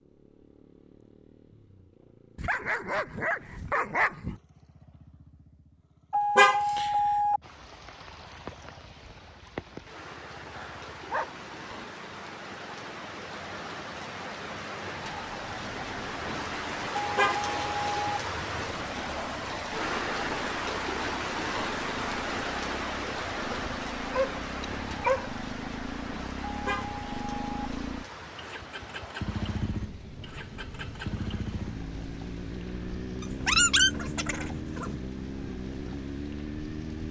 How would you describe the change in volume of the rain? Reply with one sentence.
The loudness of the rain goes up, then down.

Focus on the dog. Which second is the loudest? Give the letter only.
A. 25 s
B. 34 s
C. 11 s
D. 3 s
B.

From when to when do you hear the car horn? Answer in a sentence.
You can hear the car horn from 6.1 to 7.4 s, from 16.9 to 18.2 s and from 26.4 to 27.6 s.